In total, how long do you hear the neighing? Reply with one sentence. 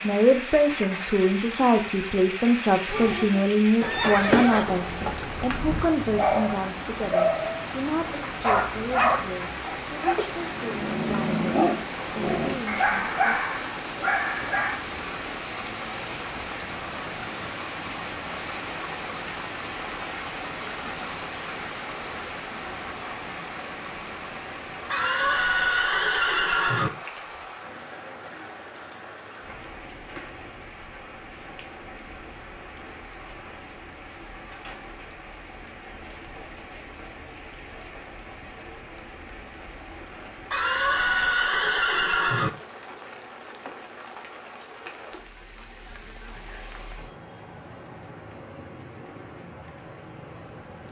The neighing can be heard for 6 seconds in total.